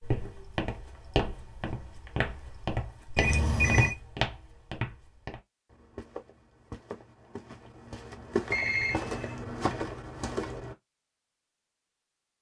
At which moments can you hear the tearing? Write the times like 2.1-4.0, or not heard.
not heard.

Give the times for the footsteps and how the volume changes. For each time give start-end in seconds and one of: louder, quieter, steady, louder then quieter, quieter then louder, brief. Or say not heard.
0.0-10.8 quieter then louder.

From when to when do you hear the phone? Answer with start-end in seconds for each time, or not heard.
3.1-4.0, 8.5-9.8.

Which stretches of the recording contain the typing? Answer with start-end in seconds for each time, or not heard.
not heard.